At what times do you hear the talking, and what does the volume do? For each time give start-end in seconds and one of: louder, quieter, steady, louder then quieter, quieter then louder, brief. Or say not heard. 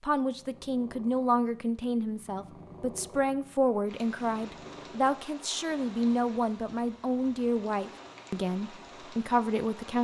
0.0-9.9 steady.